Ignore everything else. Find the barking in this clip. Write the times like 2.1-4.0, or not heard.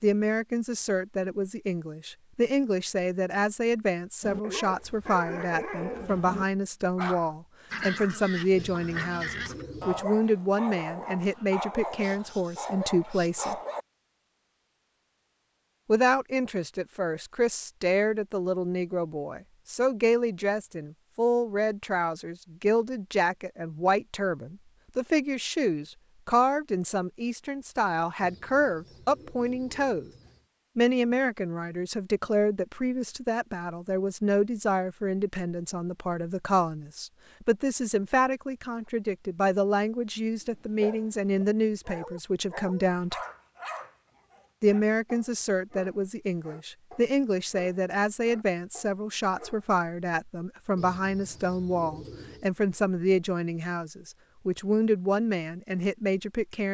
4.2-13.8, 40.4-49.7.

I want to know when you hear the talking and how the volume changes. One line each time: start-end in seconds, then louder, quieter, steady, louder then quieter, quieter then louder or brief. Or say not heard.
0.0-13.6 steady
15.8-30.1 steady
30.8-43.2 steady
44.6-56.6 steady.